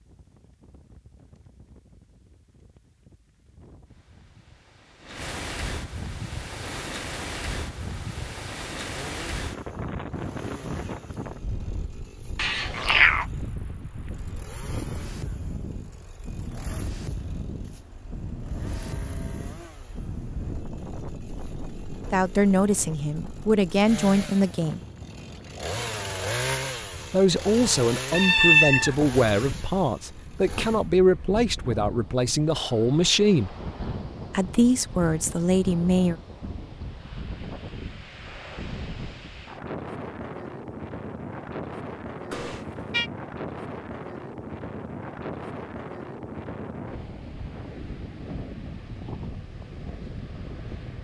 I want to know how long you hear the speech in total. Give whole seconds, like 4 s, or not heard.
11 s.